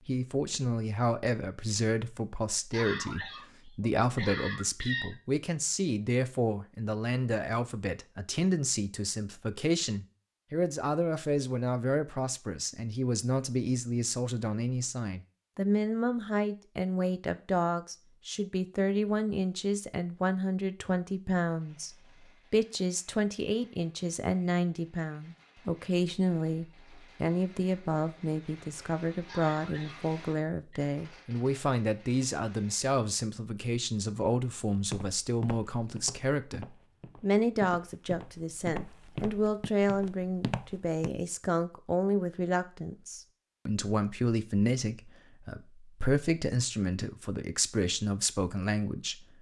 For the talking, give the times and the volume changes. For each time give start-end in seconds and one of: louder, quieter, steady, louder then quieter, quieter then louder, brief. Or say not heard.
0.1-49.3 steady.